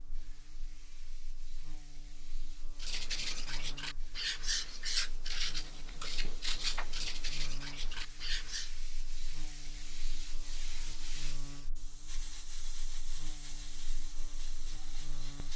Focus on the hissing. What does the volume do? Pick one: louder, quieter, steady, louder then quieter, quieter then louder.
louder.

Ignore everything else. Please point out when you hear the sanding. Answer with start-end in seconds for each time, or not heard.
2.8-8.7.